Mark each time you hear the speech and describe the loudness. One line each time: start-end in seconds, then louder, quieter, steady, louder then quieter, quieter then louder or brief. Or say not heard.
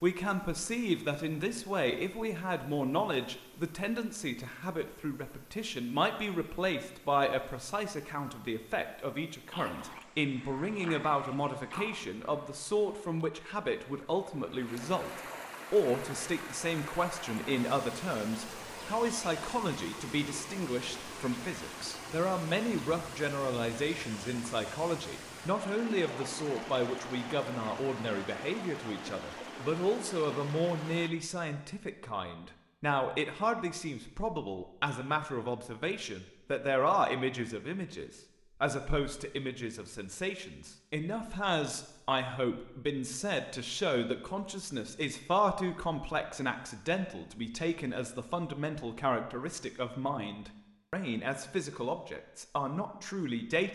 0.0-53.7 steady.